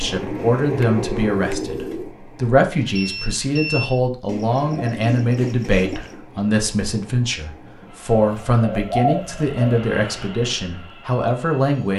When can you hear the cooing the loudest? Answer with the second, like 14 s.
9 s.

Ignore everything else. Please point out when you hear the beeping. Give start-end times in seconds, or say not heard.
2.8-3.9.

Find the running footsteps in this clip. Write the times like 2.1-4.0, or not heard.
not heard.